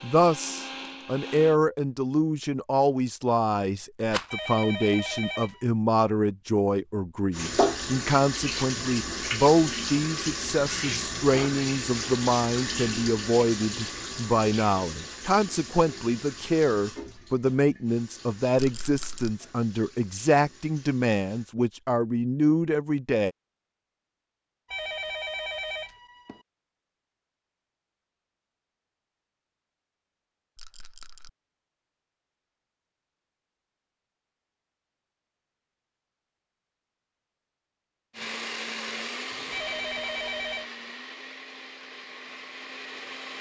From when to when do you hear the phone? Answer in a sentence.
You can hear the phone from 4.2 to 5.7 s, from 24.6 to 26.4 s and from 39.5 to 40.7 s.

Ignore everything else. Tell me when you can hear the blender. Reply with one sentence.
You can hear the blender from 0.0 to 1.6 s and from 38.1 to 43.3 s.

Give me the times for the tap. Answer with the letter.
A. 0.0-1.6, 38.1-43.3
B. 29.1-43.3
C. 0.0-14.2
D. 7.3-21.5
D.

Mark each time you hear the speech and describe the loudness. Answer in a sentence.
You can hear the speech from 0.0 to 23.3 s, at a steady volume.